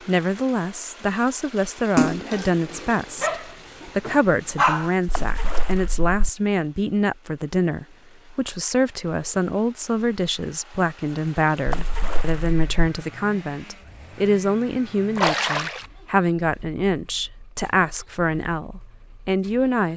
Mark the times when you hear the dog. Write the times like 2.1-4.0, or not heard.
2.3-4.9.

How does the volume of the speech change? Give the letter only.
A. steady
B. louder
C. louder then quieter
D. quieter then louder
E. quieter
A.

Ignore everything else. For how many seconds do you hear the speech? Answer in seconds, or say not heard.
20 s.